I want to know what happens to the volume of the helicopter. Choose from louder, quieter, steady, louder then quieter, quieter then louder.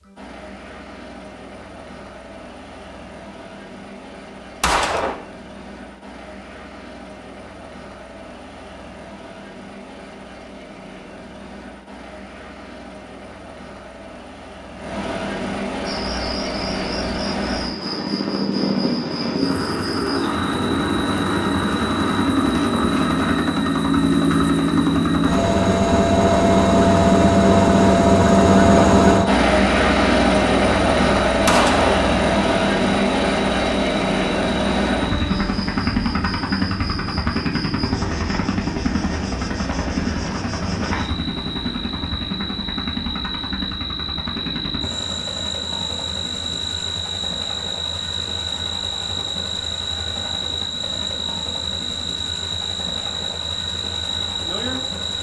louder then quieter.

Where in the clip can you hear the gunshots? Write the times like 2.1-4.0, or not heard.
4.6-5.2, 31.4-32.0.